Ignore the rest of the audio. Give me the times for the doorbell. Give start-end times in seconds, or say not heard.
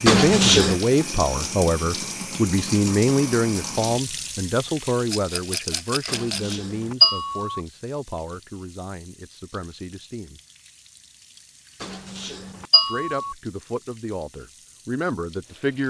0.1-0.8, 6.0-7.6, 11.8-13.3.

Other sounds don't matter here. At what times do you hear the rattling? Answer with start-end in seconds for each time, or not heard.
5.0-6.6.